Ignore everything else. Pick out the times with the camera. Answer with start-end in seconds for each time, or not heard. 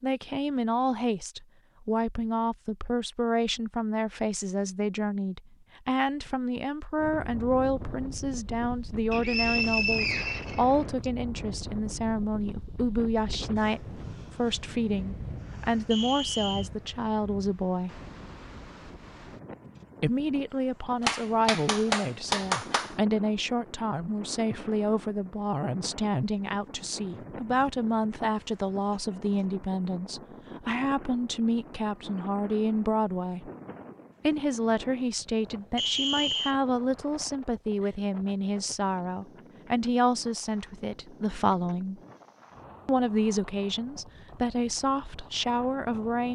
not heard.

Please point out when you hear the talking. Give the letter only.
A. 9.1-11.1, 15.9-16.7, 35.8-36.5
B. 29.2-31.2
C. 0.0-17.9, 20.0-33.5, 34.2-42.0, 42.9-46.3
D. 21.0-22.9
C.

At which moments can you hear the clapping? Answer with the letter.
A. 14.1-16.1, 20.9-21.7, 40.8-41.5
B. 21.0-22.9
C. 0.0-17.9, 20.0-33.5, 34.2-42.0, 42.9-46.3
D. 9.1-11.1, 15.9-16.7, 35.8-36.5
B.